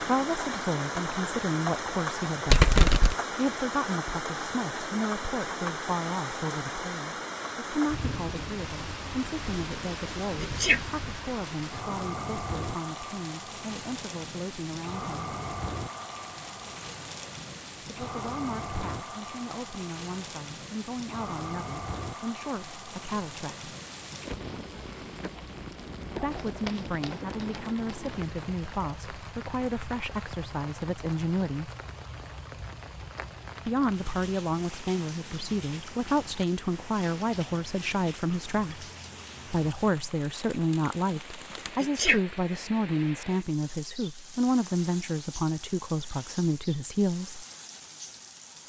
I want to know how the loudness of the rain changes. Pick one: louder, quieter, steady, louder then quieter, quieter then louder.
quieter.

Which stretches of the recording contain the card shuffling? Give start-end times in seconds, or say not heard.
2.5-3.1, 26.3-28.3.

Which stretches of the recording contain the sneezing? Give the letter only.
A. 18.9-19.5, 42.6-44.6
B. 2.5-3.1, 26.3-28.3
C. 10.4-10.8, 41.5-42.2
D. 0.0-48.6
C.